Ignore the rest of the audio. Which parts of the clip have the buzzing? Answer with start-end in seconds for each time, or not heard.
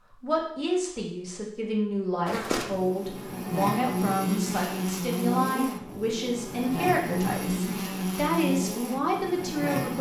2.2-9.9.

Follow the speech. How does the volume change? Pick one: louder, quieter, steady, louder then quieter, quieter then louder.
steady.